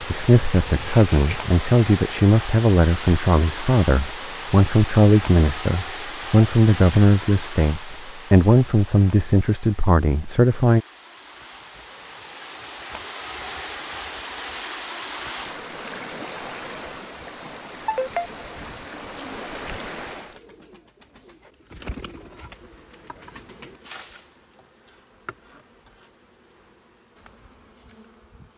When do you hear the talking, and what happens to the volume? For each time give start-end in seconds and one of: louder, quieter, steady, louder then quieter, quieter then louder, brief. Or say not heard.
0.0-10.8 steady.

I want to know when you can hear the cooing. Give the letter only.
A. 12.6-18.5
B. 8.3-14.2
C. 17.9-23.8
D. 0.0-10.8
C.